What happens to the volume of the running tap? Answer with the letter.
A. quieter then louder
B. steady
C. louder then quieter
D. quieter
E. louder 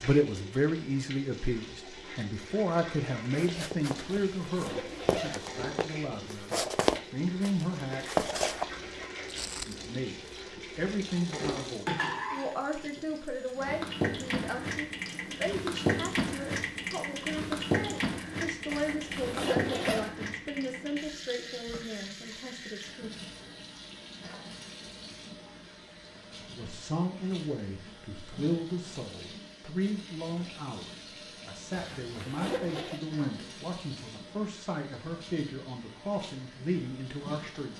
C.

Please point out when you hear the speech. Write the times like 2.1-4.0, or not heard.
0.0-8.1, 9.7-23.1, 26.4-37.7.